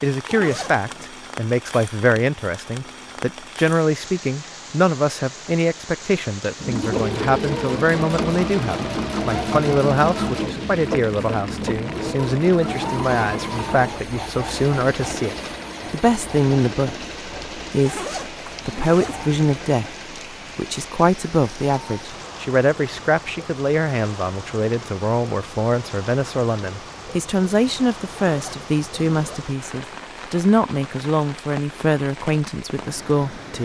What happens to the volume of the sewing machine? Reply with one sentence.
The volume of the sewing machine goes down.